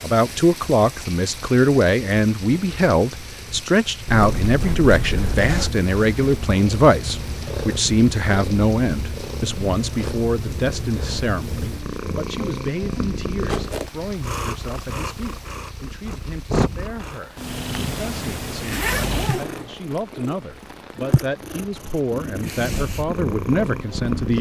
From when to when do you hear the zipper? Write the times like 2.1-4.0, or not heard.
4.0-5.7, 13.4-13.9, 18.5-19.7.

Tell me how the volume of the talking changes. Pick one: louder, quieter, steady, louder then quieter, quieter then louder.
quieter then louder.